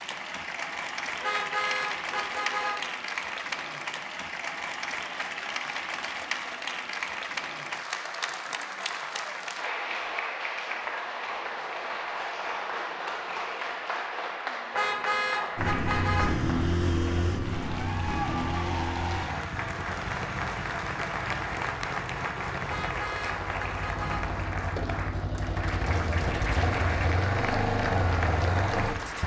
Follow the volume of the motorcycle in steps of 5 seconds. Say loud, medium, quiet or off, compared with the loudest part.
off, off, off, loud, medium, loud.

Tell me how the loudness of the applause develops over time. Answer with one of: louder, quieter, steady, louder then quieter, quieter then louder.
steady.